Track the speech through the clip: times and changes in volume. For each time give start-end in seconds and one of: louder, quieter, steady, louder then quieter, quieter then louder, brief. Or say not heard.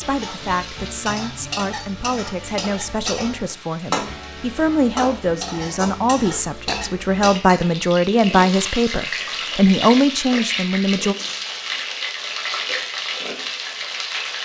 0.0-11.2 louder.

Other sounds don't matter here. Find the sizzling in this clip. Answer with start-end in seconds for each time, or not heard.
0.0-14.4.